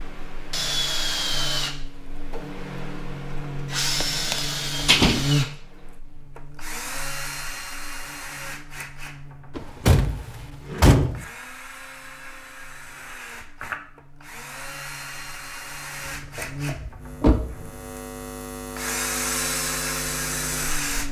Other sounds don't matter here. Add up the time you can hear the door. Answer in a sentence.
You can hear the door for 4 seconds altogether.